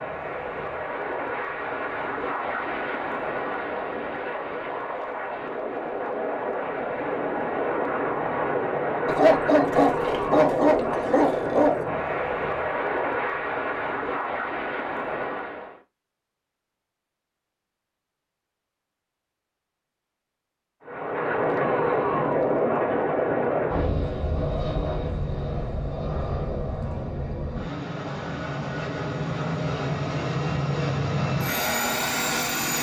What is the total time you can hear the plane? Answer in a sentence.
You can hear the plane for 28 seconds altogether.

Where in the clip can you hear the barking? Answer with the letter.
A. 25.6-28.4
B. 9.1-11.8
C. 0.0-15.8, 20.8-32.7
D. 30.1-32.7
B.